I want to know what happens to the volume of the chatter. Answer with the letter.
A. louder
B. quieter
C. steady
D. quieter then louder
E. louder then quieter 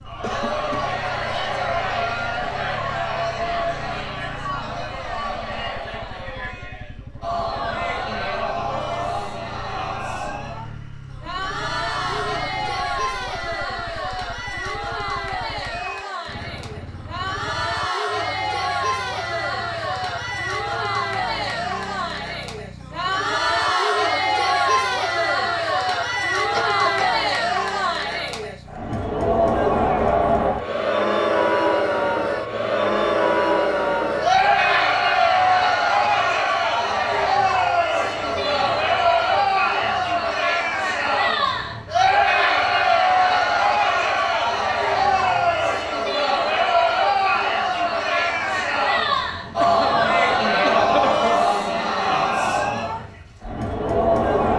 A.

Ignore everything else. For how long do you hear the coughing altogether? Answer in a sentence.
The coughing can be heard for 3 seconds in total.